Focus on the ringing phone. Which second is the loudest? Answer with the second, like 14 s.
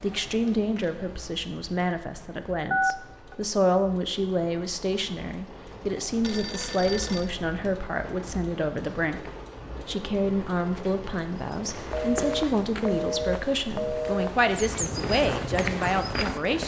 3 s.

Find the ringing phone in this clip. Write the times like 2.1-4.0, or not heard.
2.7-3.4, 6.2-7.3, 11.9-14.3.